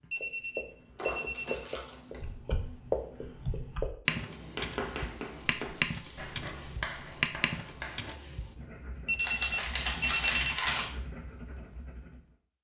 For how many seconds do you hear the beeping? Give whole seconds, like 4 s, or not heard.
3 s.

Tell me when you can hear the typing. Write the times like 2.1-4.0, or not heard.
2.2-8.5.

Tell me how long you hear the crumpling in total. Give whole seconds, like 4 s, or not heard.
4 s.